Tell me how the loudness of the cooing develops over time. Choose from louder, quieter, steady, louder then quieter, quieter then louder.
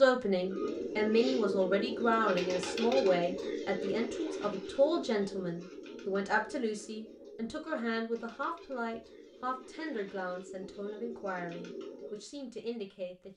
quieter then louder.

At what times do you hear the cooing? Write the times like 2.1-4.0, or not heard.
0.3-12.2.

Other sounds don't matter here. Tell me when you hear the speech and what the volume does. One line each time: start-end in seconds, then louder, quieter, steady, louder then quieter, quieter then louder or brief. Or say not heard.
0.0-13.3 quieter.